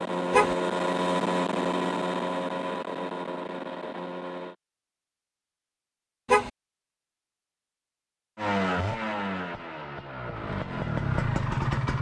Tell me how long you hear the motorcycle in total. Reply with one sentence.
You can hear the motorcycle for 8 seconds altogether.